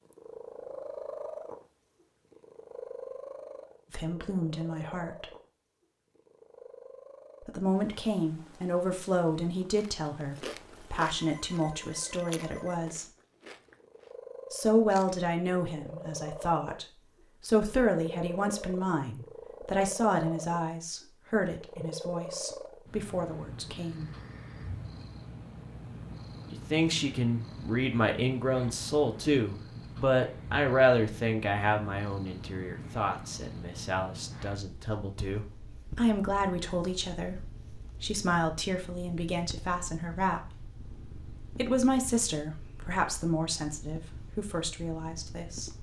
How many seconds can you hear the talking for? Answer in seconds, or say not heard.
35 s.